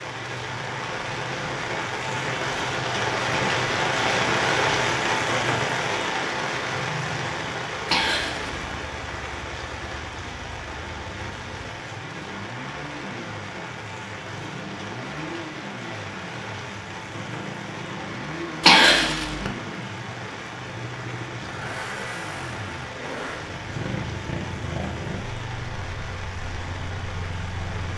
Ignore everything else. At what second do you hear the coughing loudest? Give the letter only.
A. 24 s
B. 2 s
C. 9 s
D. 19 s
D.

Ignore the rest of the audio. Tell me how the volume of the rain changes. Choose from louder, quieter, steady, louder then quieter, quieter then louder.
quieter.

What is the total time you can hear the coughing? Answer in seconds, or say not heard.
2 s.